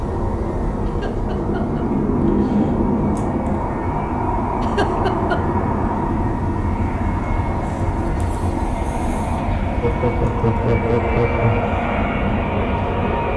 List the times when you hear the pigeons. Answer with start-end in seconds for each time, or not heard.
not heard.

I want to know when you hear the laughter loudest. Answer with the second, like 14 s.
11 s.